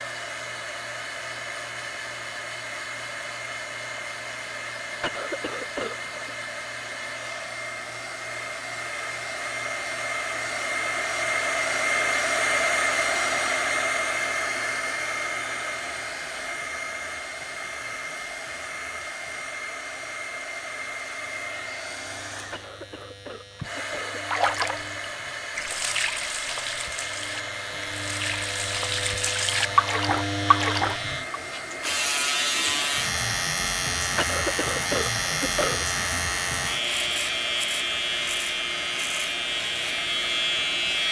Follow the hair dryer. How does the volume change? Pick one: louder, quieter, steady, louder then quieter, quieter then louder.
louder then quieter.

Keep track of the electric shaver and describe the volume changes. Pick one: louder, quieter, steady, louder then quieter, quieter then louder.
louder.